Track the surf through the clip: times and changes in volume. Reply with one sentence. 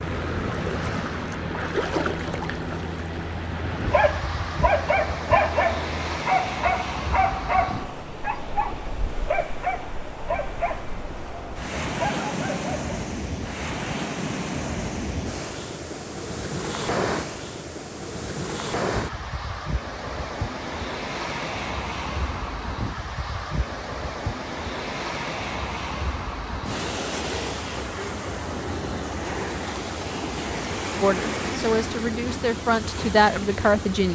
The surf can be heard from 0.0 to 34.0 s, at a steady volume.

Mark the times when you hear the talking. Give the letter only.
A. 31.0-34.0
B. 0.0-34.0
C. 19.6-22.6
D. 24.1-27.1
A.